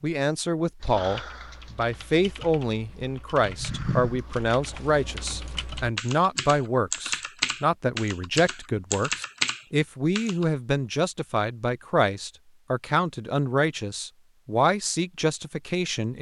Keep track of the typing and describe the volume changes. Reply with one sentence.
The volume of the typing goes up.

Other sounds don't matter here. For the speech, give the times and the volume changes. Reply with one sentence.
You can hear the speech from 0.0 to 16.1 s, at a steady volume.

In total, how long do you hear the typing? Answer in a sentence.
You can hear the typing for 10 seconds altogether.